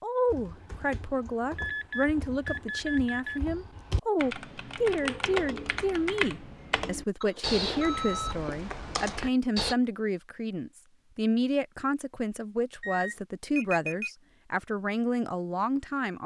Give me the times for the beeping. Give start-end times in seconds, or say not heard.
1.6-3.4, 7.2-8.3, 12.8-14.1.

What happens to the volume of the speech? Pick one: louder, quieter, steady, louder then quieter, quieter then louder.
steady.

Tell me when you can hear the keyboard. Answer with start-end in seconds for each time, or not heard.
0.2-9.8.